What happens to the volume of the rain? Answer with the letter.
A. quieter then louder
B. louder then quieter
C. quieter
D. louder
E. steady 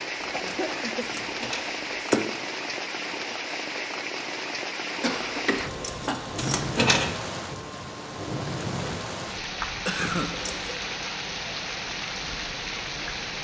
E.